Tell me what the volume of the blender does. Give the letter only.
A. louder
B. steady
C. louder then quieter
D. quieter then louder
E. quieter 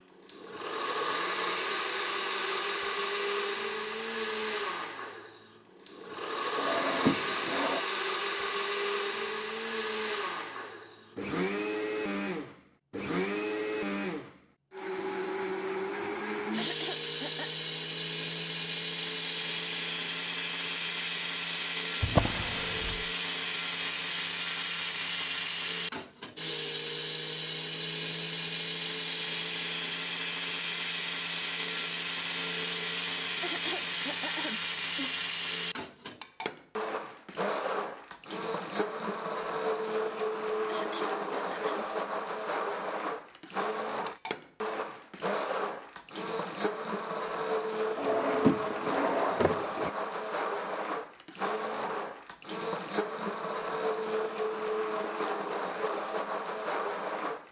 B.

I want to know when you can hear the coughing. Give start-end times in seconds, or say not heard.
16.5-17.6, 33.4-35.1, 40.6-41.9.